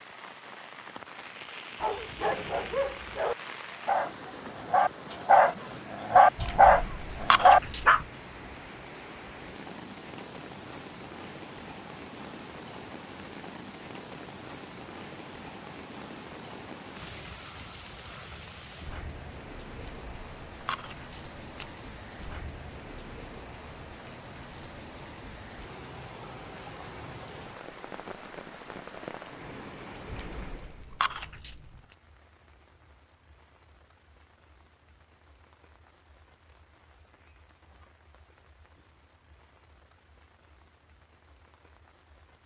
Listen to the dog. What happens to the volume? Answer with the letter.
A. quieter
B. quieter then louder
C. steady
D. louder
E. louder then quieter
D.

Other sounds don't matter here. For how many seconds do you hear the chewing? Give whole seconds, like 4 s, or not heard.
6 s.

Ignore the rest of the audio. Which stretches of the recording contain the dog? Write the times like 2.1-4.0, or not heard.
1.8-8.0.